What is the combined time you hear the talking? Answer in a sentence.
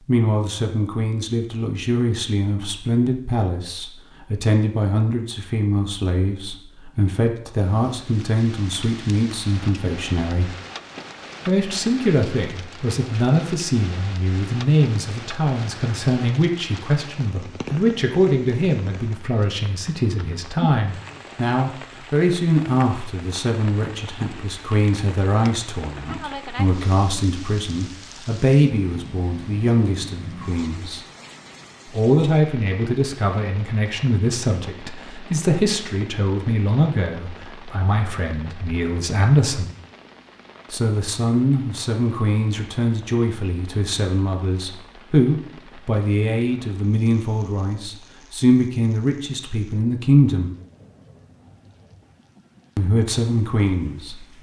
You can hear the talking for 49 seconds altogether.